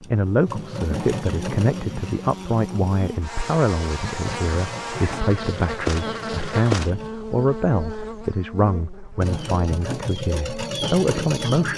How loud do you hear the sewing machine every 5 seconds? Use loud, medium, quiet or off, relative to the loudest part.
medium, medium, loud.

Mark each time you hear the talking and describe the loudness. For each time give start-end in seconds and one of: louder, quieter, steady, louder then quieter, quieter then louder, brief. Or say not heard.
0.0-11.7 steady.